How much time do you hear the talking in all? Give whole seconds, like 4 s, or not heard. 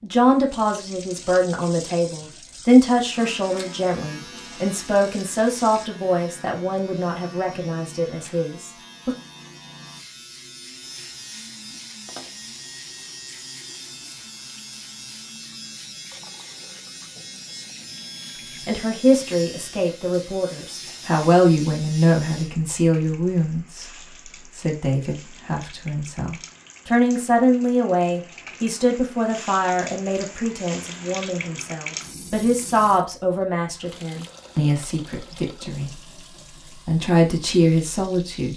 29 s.